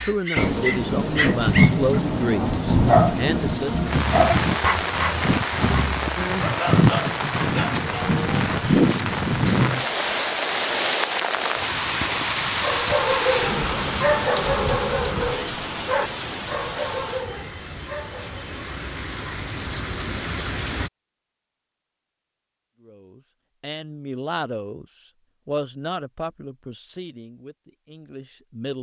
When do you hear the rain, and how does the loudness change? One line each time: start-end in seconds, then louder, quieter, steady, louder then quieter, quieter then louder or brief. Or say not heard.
0.0-20.9 quieter.